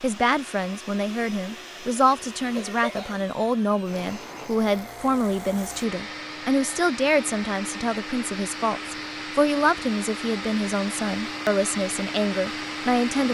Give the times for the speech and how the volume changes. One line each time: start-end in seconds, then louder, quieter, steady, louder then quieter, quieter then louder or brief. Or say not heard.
0.0-13.2 steady.